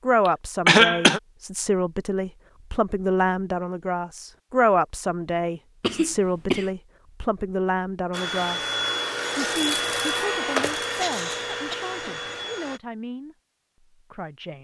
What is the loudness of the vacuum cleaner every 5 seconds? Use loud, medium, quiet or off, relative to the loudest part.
off, loud, loud.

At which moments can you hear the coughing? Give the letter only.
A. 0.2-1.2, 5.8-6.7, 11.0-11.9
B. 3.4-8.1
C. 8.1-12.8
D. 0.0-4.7
A.